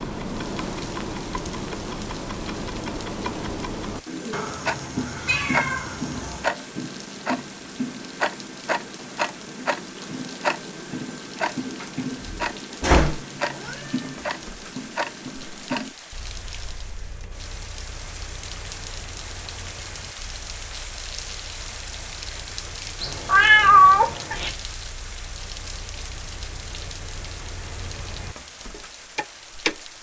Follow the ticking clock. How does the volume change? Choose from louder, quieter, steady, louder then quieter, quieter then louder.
quieter then louder.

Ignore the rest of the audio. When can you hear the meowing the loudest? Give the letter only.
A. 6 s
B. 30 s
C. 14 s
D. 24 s
D.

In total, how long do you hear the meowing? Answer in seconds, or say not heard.
5 s.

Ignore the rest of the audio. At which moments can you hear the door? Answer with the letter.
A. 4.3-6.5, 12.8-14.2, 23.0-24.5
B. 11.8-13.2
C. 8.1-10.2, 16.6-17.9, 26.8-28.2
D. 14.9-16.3
B.